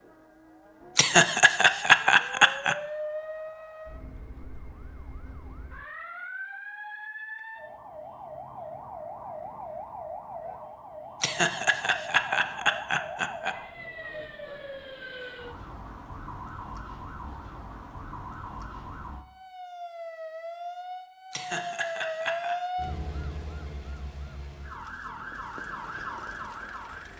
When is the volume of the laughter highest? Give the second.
2 s.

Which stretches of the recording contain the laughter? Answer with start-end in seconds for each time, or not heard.
0.9-2.8, 11.2-13.6, 21.3-22.6.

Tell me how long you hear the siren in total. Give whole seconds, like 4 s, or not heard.
27 s.